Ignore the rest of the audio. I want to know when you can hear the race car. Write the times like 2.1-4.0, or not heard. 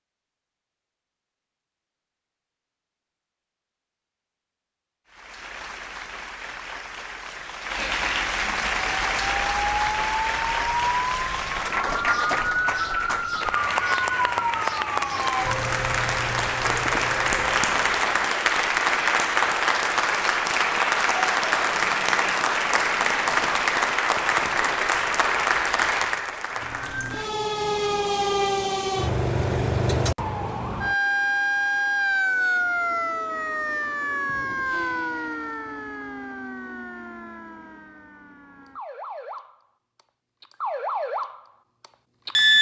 not heard.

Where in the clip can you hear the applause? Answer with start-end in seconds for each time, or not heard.
5.0-27.4.